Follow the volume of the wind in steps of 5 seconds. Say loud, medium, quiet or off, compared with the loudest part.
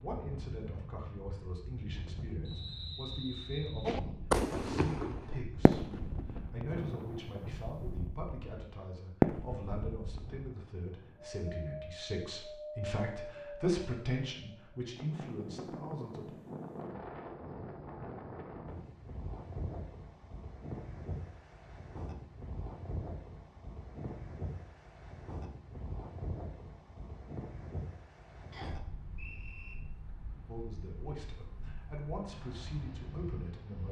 loud, loud, loud, loud, loud, loud, medium.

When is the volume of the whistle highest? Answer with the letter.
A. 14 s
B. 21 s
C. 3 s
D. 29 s
C.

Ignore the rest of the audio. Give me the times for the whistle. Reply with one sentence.
You can hear the whistle from 2.5 to 4.0 s and from 28.5 to 29.8 s.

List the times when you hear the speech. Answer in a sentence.
The speech can be heard from 0.0 to 16.4 s and from 30.4 to 33.8 s.